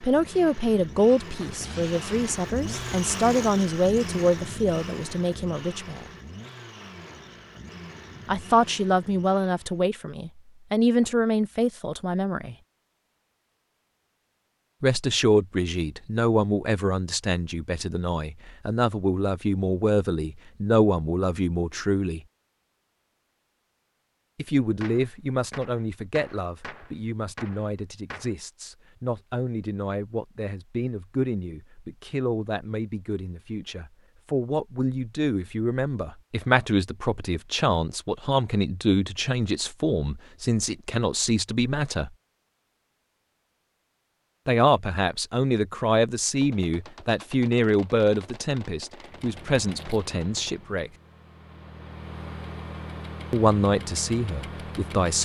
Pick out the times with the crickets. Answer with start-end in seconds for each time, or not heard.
not heard.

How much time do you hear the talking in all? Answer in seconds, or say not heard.
44 s.